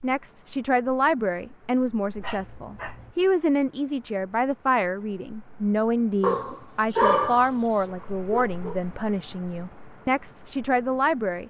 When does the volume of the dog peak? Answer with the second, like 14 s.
7 s.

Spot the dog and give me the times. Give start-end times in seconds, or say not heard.
2.1-3.1, 6.2-7.5, 8.3-8.8.